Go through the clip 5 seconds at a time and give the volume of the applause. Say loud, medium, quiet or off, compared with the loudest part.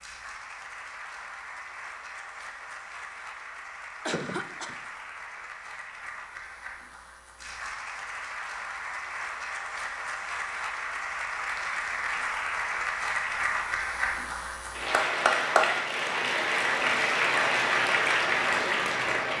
quiet, quiet, medium, loud.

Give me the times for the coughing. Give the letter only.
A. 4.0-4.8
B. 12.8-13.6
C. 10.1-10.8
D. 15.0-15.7
A.